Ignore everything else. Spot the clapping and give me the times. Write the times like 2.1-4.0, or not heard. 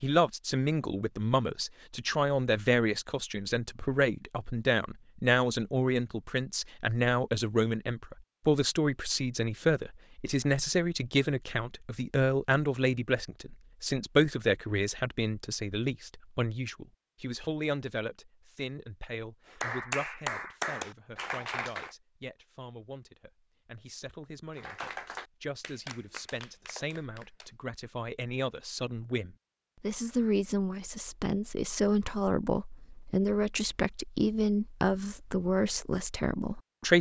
19.4-21.9, 24.6-27.6.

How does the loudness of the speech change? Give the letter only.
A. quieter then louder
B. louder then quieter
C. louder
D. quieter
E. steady
A.